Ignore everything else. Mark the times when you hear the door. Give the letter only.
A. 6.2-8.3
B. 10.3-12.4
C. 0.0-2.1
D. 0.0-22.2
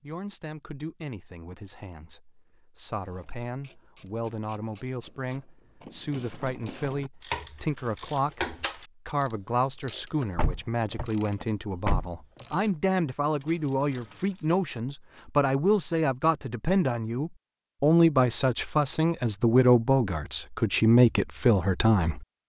B.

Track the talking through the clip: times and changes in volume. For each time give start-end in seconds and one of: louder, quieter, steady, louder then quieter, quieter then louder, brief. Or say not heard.
0.0-22.2 louder.